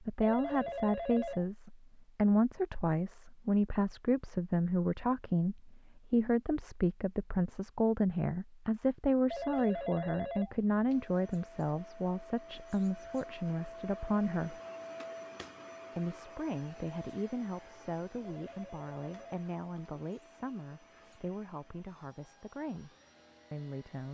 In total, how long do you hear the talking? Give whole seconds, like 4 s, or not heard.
22 s.